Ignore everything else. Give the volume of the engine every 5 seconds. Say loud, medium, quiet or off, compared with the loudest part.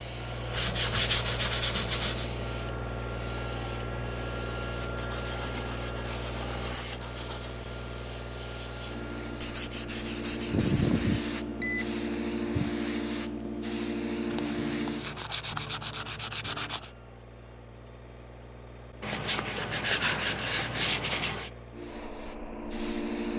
loud, loud, medium, quiet, medium.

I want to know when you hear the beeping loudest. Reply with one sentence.
The volume of the beeping peaks at 11 seconds.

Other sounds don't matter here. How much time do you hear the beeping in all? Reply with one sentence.
The beeping can be heard for 2 seconds in total.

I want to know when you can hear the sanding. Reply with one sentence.
The sanding can be heard from 0.5 to 2.4 s, from 5.0 to 7.6 s, from 9.4 to 11.4 s, from 14.2 to 16.9 s and from 19.0 to 21.5 s.